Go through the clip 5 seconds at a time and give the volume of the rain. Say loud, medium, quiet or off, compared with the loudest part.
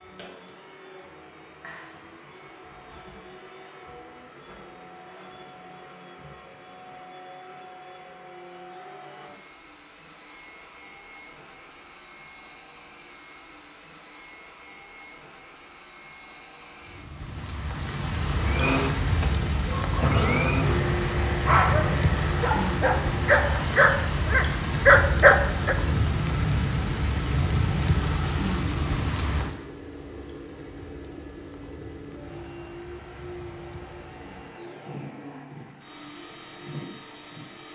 off, off, off, loud, loud, loud, quiet, quiet.